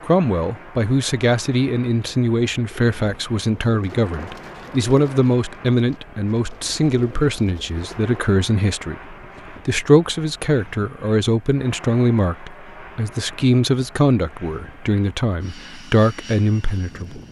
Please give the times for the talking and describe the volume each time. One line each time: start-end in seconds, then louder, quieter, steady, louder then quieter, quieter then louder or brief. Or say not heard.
0.0-17.2 steady.